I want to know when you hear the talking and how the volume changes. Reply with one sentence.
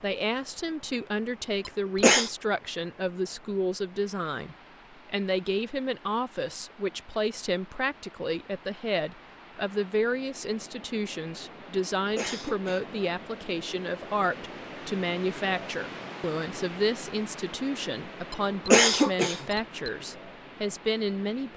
You can hear the talking from 0.0 to 21.5 s, at a steady volume.